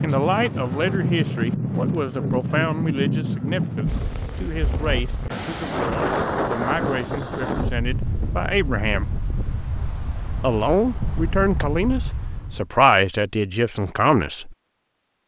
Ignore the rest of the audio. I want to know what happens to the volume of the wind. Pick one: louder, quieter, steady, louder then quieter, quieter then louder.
quieter.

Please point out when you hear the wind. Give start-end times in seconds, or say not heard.
0.0-12.7.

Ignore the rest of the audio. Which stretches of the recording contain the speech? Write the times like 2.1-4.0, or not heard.
0.0-9.1, 10.4-14.6.